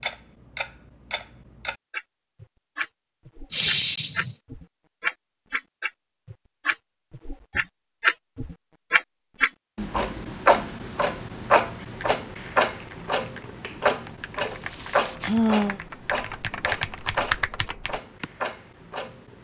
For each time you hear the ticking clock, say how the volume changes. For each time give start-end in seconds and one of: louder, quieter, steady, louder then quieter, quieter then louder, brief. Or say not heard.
0.0-19.3 louder then quieter.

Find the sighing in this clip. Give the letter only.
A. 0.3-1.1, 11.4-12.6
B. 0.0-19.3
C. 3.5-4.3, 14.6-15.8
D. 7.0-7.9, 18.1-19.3
C.